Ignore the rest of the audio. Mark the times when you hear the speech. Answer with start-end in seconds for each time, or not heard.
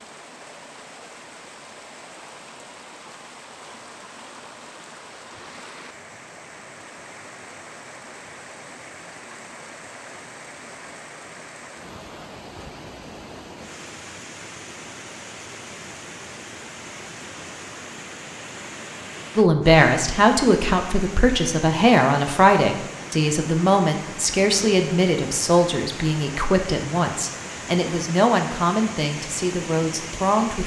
19.4-30.6.